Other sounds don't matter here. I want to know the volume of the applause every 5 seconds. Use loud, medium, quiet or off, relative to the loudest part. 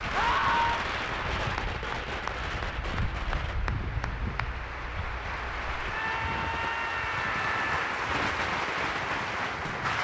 medium, loud.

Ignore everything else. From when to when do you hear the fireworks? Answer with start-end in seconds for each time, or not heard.
0.0-3.6, 8.0-10.0.